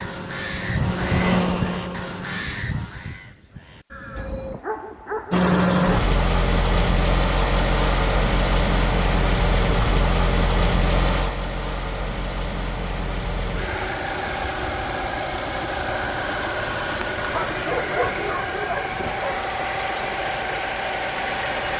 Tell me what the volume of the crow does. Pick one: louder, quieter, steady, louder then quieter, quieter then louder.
quieter.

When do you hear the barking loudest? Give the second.
18 s.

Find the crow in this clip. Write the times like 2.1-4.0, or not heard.
0.0-4.6.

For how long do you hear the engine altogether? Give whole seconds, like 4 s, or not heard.
19 s.